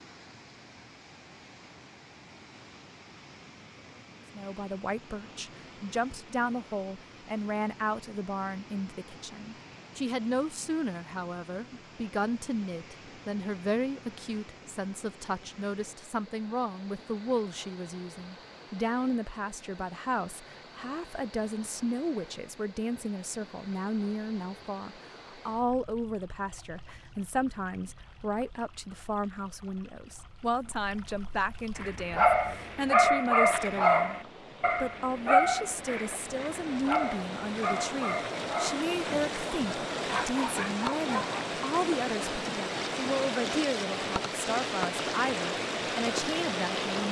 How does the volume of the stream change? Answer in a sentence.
The loudness of the stream goes up.